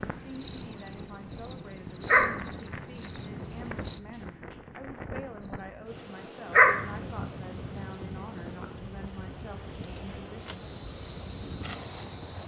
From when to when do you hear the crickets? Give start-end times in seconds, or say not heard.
0.0-12.4.